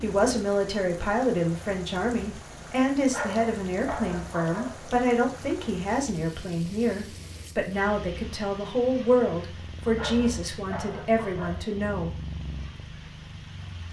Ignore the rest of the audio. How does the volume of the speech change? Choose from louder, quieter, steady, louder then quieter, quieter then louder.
steady.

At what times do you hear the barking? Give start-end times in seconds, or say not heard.
3.1-5.0, 9.9-11.8.